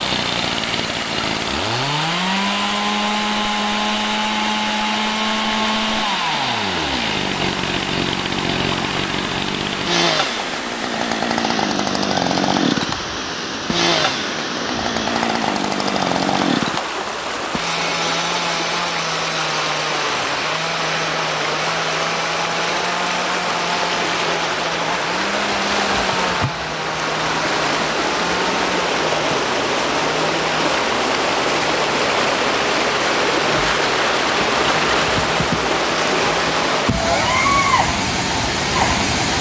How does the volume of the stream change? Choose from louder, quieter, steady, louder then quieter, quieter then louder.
louder.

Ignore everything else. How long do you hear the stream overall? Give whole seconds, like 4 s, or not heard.
39 s.